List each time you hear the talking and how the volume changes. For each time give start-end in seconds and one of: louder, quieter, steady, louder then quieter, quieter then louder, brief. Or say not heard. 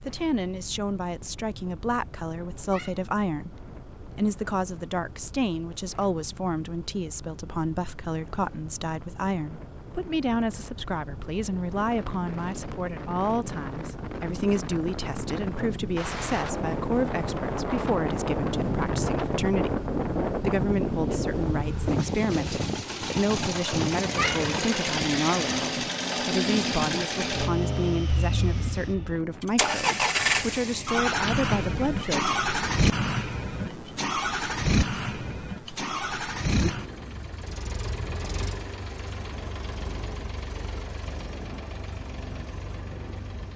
0.1-32.4 steady.